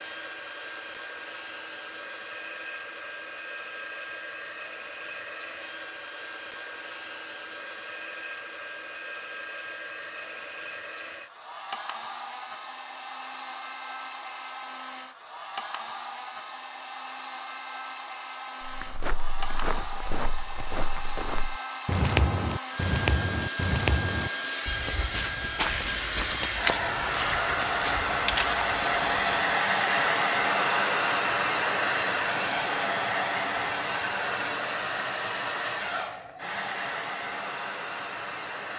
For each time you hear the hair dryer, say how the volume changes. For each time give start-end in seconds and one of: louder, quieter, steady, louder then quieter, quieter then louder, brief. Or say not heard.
0.0-38.7 louder.